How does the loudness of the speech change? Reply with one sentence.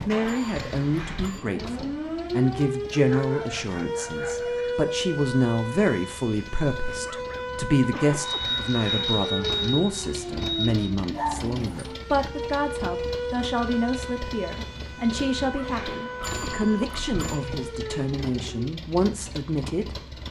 The volume of the speech stays about the same.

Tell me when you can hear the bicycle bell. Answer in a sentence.
You can hear the bicycle bell from 0.2 to 1.4 s, from 8.2 to 10.9 s and from 16.2 to 17.4 s.